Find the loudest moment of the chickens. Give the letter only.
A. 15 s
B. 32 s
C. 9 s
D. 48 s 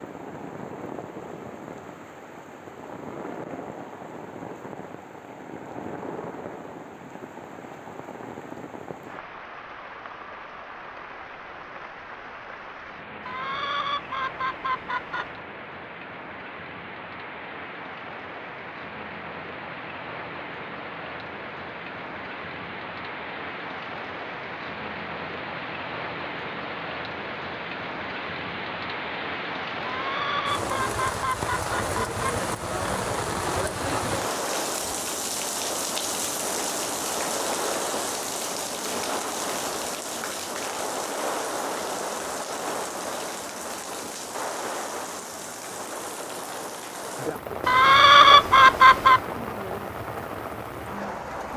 D.